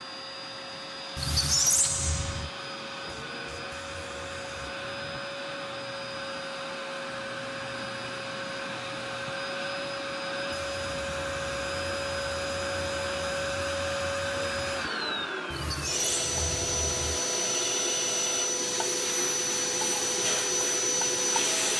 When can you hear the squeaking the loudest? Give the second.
2 s.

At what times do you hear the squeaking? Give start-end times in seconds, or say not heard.
1.1-2.5, 15.5-17.2.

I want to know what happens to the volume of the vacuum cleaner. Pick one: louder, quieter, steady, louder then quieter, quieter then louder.
louder.